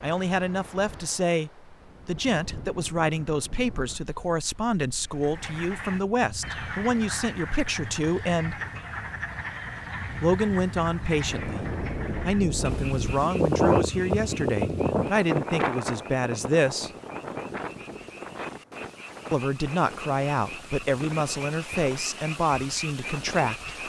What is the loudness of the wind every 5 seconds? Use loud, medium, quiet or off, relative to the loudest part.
quiet, quiet, loud, medium, quiet.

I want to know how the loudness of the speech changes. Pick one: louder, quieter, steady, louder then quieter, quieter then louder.
steady.